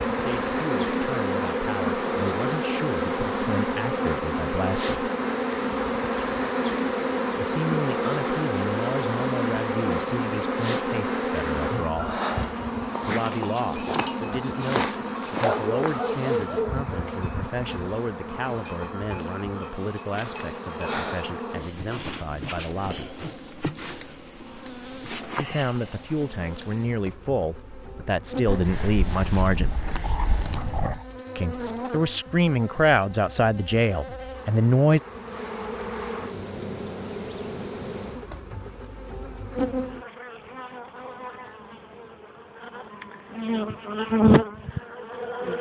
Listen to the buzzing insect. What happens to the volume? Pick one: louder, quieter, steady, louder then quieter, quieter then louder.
quieter then louder.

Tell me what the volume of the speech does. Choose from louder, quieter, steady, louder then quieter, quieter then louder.
louder.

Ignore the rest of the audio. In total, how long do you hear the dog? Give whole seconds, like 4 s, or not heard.
4 s.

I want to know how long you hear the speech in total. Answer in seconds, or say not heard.
28 s.